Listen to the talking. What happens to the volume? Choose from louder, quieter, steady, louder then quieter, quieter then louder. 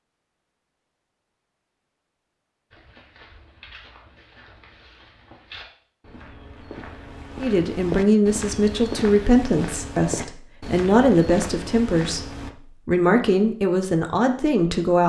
steady.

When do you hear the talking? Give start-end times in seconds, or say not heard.
7.4-15.0.